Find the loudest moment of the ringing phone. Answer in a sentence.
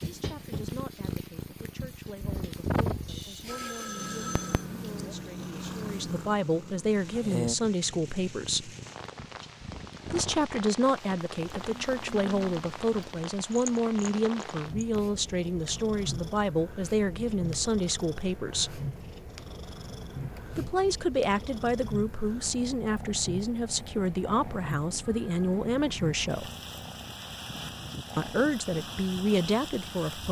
The loudest moment of the ringing phone is at 4 seconds.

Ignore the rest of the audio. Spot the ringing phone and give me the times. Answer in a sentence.
The ringing phone can be heard from 3.0 to 4.7 s and from 25.0 to 25.4 s.